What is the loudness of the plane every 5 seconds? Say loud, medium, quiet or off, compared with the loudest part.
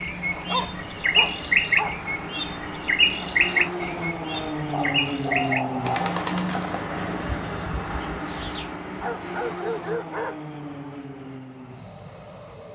loud, loud, medium.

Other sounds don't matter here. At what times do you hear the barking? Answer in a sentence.
You can hear the barking from 0.3 to 1.9 s, from 4.7 to 6.0 s and from 8.9 to 10.4 s.